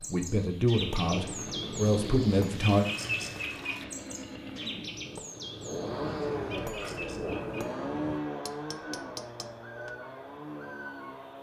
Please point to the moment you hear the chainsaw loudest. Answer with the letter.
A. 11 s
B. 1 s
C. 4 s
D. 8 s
D.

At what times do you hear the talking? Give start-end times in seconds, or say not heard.
0.0-2.9.